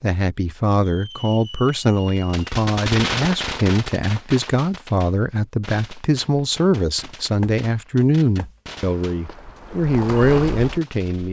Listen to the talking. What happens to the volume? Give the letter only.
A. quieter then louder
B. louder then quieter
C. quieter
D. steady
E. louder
D.